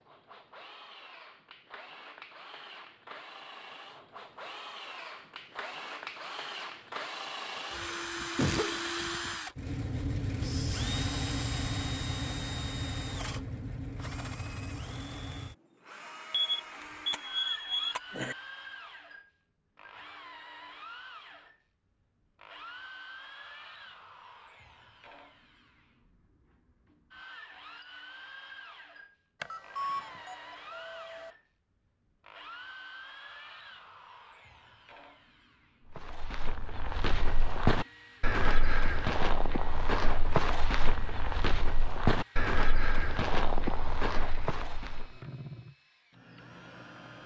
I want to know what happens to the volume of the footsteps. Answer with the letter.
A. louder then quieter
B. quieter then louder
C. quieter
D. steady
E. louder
D.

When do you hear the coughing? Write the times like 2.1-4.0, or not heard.
7.5-8.8.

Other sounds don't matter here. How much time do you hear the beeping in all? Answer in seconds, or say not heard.
4 s.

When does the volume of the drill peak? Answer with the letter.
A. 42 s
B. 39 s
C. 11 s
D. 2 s
C.